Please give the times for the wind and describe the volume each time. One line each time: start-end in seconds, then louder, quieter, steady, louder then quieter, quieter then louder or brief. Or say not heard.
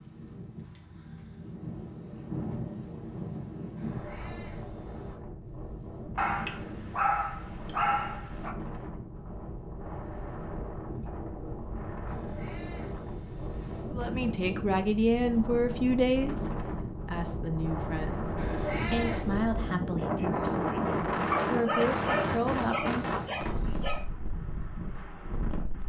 0.0-25.8 louder.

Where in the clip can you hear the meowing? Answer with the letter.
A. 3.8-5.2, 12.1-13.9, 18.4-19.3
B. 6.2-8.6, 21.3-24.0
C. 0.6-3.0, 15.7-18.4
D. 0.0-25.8
A.